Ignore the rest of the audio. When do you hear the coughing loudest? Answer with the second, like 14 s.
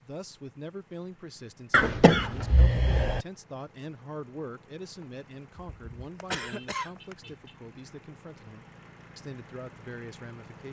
2 s.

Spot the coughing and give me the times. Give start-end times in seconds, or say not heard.
1.7-3.2, 5.5-7.3.